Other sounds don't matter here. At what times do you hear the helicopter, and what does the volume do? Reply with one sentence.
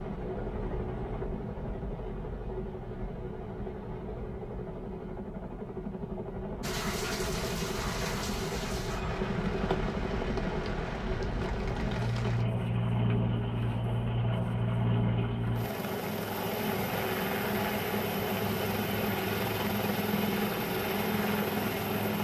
You can hear the helicopter from 0.0 to 22.1 s, getting louder.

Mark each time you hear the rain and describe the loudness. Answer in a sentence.
The rain can be heard from 6.6 to 22.1 s, at a steady volume.